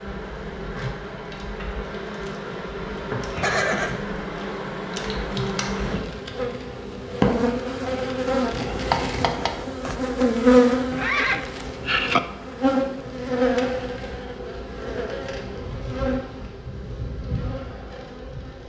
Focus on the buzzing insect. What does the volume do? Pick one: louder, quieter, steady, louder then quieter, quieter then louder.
louder then quieter.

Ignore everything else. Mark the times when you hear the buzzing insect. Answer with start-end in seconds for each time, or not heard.
0.0-18.6.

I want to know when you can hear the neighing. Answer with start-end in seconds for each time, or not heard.
3.4-4.0, 10.9-12.2.